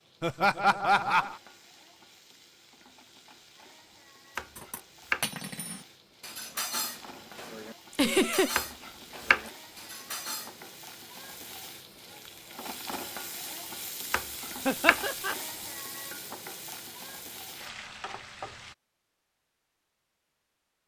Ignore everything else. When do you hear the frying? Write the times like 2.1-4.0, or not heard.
0.0-18.8.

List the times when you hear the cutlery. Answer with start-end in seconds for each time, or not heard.
4.5-10.8.